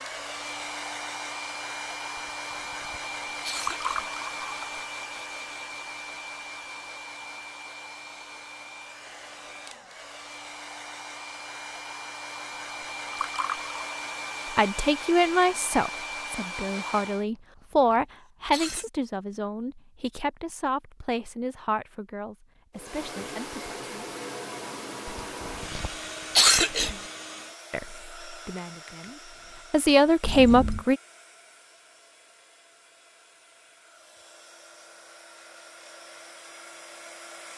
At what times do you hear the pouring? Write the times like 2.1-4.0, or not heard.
3.6-4.7, 13.0-13.8, 30.2-30.9.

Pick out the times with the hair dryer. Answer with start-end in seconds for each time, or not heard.
0.0-17.2, 22.8-37.5.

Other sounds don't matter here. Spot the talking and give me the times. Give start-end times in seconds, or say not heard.
14.6-24.1, 27.7-31.0.